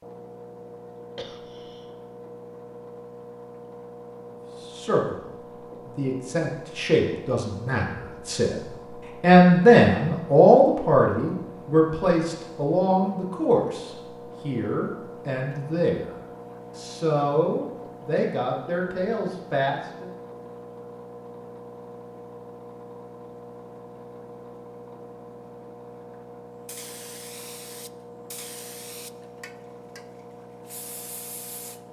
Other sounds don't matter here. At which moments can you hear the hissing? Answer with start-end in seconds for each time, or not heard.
26.6-31.8.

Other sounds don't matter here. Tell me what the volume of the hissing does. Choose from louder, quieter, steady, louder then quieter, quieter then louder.
quieter then louder.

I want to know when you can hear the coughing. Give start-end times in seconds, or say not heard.
1.1-1.9.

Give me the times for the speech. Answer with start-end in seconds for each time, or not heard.
4.6-5.2, 5.8-8.6, 9.2-16.1, 16.8-20.1.